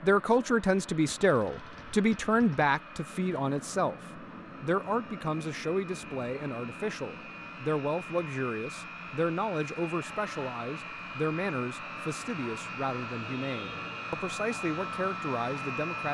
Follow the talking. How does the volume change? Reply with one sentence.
The loudness of the talking goes down.